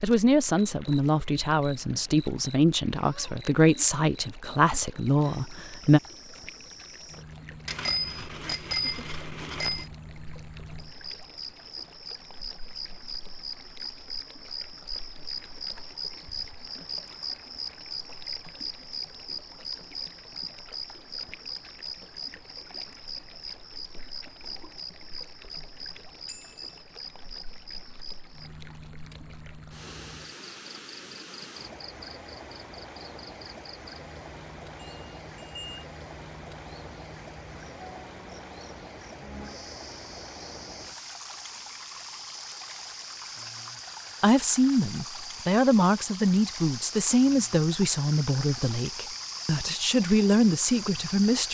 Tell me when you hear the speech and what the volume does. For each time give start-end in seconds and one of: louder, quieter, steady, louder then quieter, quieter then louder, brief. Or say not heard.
0.0-6.0 steady
44.2-51.4 quieter then louder.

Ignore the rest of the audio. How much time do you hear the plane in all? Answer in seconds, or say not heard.
not heard.